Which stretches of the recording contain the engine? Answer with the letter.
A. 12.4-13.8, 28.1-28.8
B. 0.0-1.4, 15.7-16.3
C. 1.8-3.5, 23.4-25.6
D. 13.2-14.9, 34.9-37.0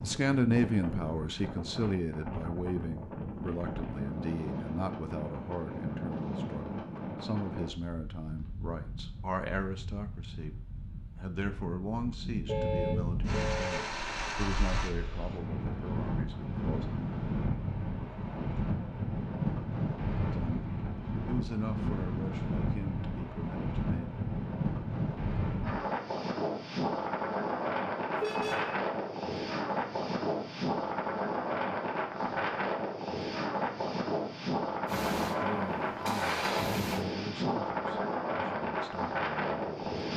D.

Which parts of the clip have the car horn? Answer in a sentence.
The car horn can be heard from 12.4 to 13.8 s and from 28.1 to 28.8 s.